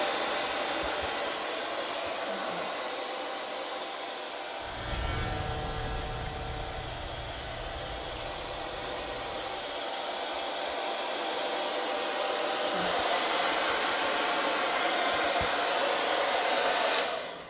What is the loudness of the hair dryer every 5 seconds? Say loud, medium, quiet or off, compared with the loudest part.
medium, medium, loud, loud.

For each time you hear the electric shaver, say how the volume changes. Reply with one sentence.
You can hear the electric shaver from 4.6 to 9.8 s, getting quieter.